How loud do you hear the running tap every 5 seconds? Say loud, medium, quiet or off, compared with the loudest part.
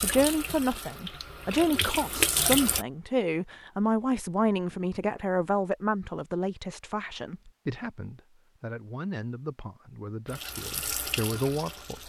loud, off, medium.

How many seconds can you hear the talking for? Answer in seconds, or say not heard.
12 s.